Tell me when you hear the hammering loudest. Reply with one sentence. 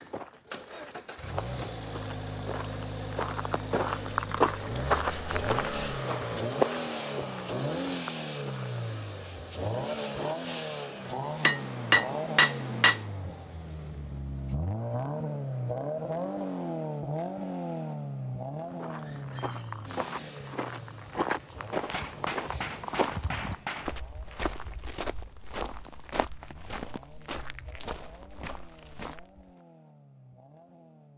The loudest moment of the hammering is at 12 seconds.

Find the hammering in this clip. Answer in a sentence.
The hammering can be heard from 11.4 to 13.1 s and from 21.7 to 23.9 s.